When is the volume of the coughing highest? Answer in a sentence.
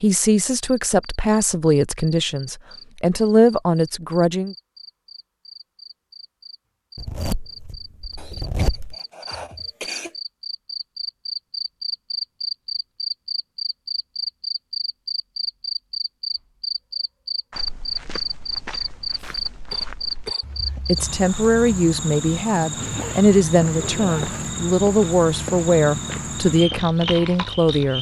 The volume of the coughing peaks at 10 seconds.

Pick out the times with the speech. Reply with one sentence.
The speech can be heard from 0.0 to 4.5 s and from 20.9 to 27.9 s.